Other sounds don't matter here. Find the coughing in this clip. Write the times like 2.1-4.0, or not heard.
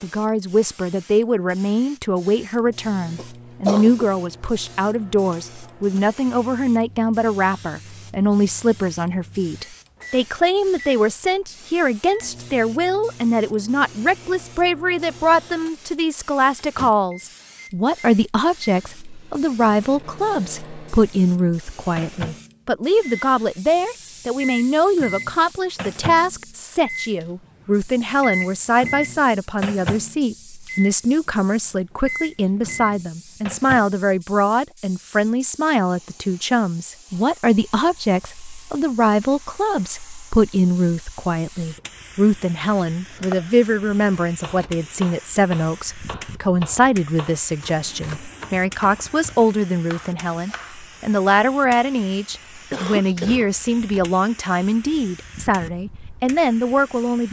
3.1-4.0, 52.7-53.5.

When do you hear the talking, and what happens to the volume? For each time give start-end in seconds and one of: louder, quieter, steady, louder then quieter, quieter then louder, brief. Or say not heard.
0.0-57.2 steady.